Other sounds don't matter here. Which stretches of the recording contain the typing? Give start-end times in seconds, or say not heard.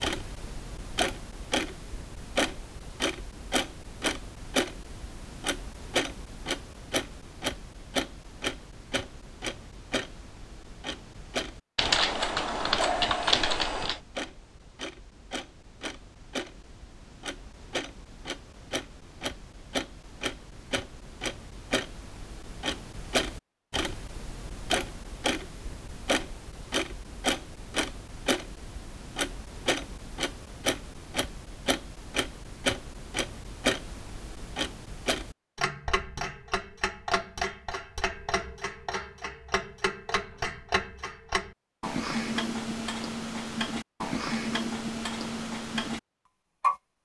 11.8-14.0.